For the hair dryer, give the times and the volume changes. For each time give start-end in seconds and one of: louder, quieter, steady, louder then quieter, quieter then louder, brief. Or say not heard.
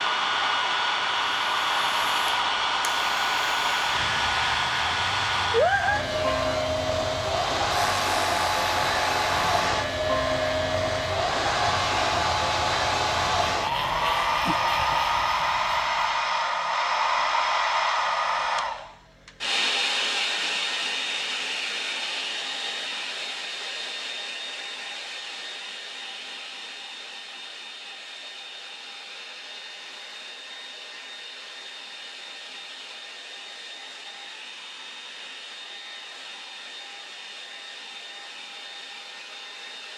0.0-39.9 quieter.